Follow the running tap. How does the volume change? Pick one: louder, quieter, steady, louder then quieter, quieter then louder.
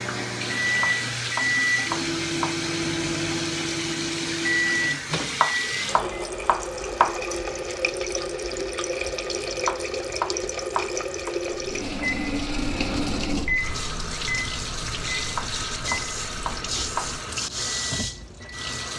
steady.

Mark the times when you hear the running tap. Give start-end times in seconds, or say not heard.
0.0-18.9.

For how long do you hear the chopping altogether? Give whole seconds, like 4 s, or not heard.
7 s.